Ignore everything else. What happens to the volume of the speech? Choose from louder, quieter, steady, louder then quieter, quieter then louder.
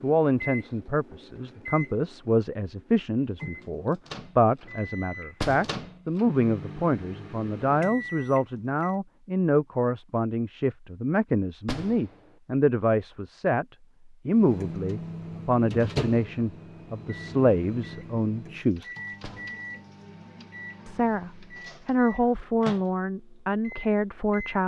steady.